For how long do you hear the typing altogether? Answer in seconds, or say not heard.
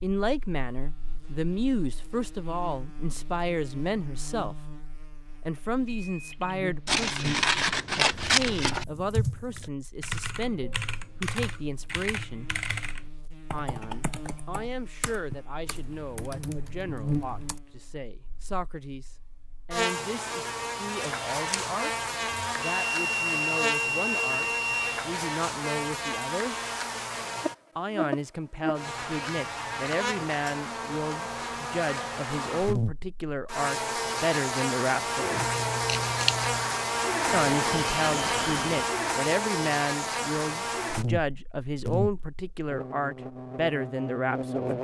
9 s.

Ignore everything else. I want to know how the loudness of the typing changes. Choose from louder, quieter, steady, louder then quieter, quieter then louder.
quieter.